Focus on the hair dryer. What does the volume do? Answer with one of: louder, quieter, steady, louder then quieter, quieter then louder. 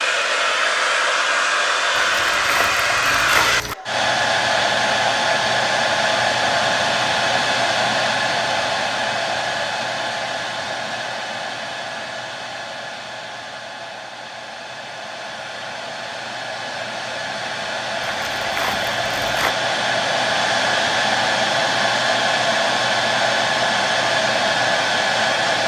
quieter then louder.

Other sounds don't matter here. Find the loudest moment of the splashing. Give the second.
3 s.